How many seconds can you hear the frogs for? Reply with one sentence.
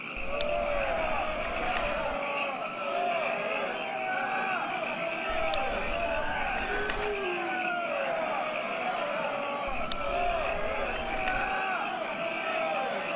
You can hear the frogs for 13 seconds altogether.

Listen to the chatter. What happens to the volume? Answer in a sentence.
The loudness of the chatter stays about the same.